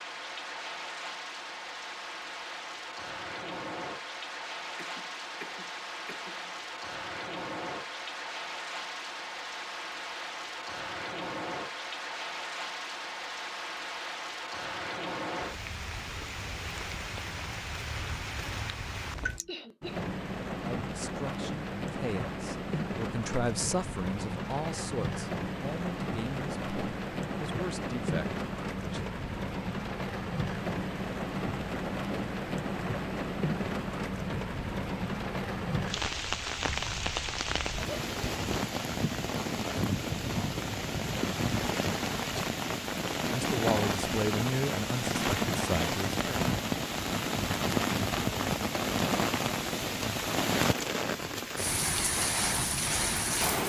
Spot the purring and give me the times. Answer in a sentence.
The purring can't be heard in this clip.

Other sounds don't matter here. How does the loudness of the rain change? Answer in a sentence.
The volume of the rain goes up.